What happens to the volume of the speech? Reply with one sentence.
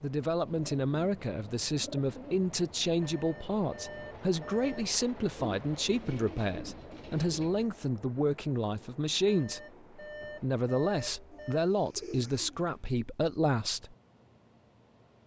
The volume of the speech stays about the same.